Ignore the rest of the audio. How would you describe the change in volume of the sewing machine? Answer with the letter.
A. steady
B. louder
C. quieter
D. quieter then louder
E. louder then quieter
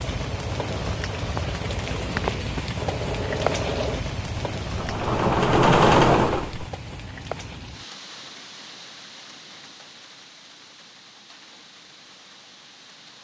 B.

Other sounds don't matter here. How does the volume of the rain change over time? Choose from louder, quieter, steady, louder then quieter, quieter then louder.
quieter.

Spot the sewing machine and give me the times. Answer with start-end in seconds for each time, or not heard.
0.1-6.7.